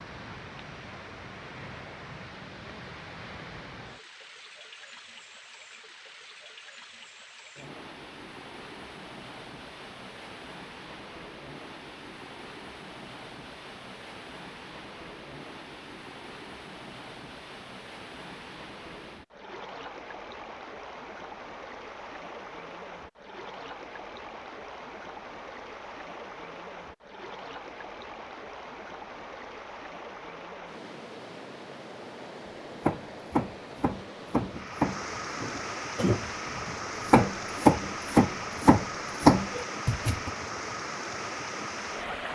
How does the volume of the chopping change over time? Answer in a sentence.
The volume of the chopping goes up.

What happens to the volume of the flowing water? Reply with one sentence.
The loudness of the flowing water goes up.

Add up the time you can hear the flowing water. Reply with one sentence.
The flowing water can be heard for 42 seconds in total.